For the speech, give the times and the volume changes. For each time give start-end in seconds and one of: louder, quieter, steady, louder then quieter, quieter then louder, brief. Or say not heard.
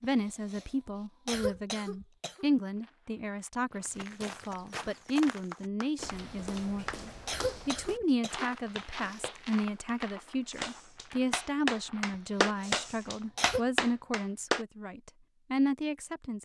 0.0-16.4 steady.